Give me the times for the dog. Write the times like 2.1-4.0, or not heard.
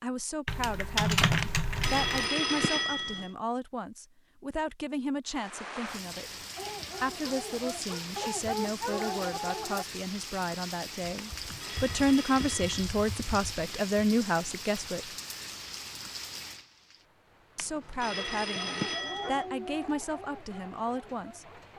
6.5-9.8, 18.4-21.7.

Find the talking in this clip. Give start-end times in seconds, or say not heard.
0.0-6.3, 7.0-15.1, 17.6-21.4.